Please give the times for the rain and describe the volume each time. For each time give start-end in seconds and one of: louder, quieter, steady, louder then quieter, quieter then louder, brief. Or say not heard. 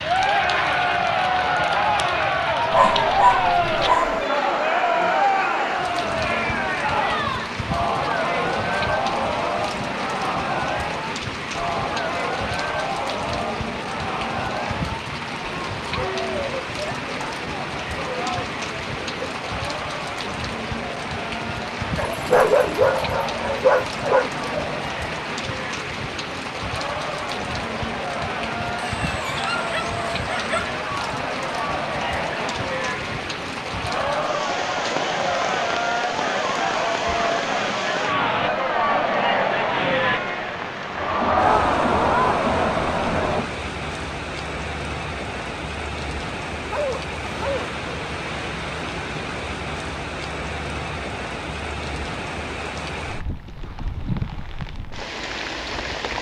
0.0-56.1 steady.